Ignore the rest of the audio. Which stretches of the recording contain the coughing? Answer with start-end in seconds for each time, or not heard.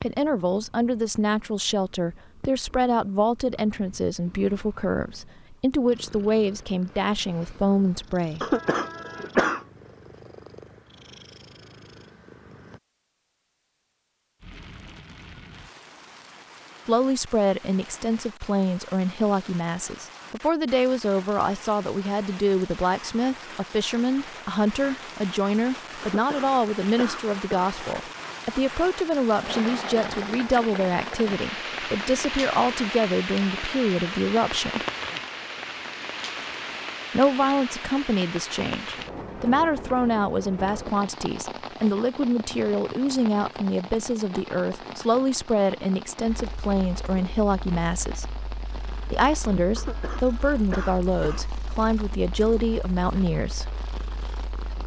8.4-9.6, 26.0-27.8, 49.8-51.5.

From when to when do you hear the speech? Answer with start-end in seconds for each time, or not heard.
0.0-8.4, 16.9-34.8, 37.1-48.2, 49.1-53.7.